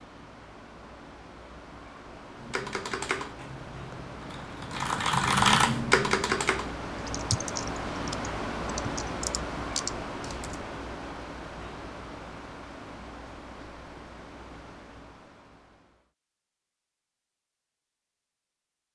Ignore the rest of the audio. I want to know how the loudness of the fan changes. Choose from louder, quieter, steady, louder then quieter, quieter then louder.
louder then quieter.